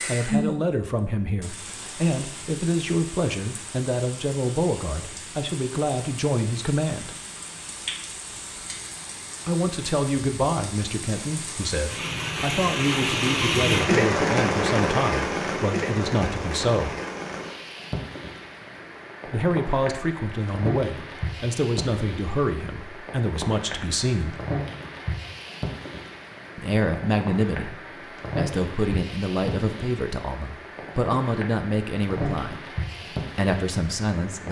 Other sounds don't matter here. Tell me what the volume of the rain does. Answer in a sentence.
The volume of the rain goes up, then down.